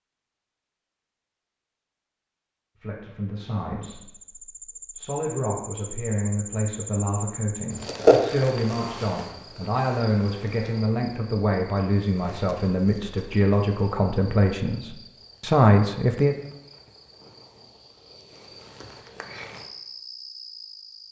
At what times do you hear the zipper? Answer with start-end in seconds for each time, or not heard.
not heard.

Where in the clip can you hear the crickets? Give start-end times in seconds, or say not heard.
3.8-21.0.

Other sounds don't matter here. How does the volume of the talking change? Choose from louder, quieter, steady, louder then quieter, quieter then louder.
louder.